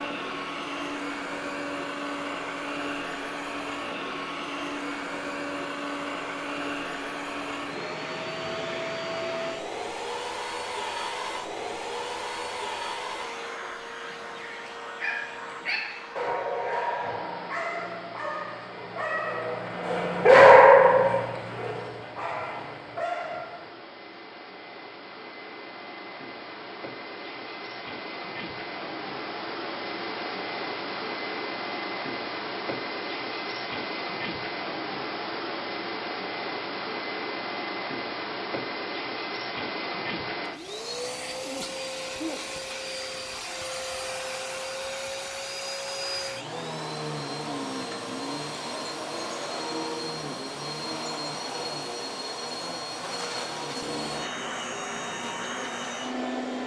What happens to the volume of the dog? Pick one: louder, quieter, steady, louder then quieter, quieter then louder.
louder then quieter.